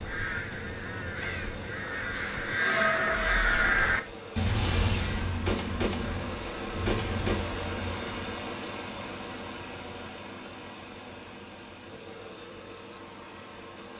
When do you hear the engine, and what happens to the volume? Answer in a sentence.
You can hear the engine from 0.0 to 13.9 s, getting louder then quieter.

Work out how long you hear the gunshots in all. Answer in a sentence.
The gunshots can be heard for 4 seconds in total.